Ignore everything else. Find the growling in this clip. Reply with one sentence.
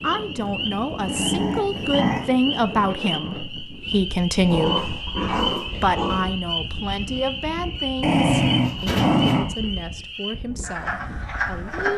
You can hear the growling from 1.1 to 2.2 s, from 4.5 to 6.3 s and from 8.0 to 9.4 s.